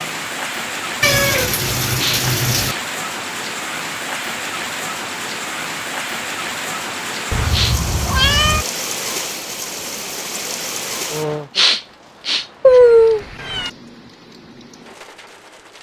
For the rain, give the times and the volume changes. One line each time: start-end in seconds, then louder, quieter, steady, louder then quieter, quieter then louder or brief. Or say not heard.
0.0-15.7 quieter.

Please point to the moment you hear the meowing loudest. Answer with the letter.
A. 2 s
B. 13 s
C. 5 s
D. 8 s
B.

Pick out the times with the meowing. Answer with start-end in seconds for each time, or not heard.
1.0-2.8, 7.3-8.7, 12.6-13.7.